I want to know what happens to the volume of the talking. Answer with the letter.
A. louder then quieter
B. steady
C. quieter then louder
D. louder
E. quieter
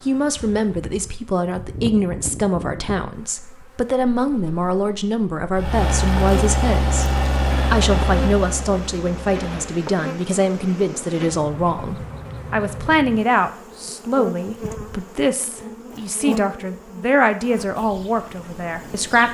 B.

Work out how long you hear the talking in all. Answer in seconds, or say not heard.
19 s.